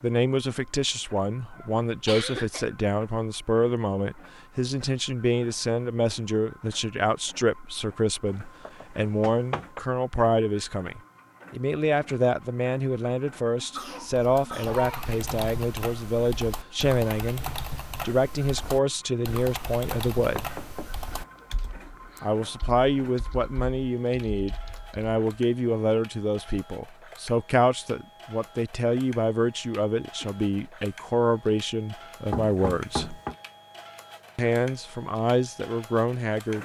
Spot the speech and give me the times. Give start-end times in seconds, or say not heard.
0.0-20.4, 22.2-33.2, 34.4-36.6.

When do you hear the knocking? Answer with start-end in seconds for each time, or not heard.
8.2-9.8, 20.1-20.9, 32.3-33.4.